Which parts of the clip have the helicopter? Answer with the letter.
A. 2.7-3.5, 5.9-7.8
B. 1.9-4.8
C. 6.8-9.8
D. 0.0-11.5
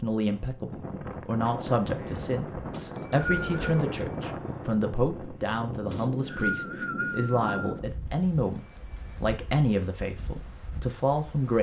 B.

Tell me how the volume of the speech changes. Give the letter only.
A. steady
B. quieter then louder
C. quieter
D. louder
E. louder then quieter
A.